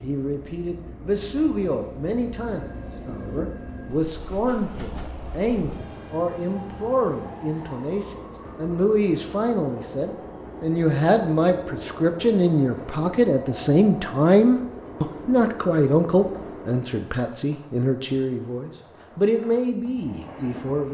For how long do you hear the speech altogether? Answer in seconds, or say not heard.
21 s.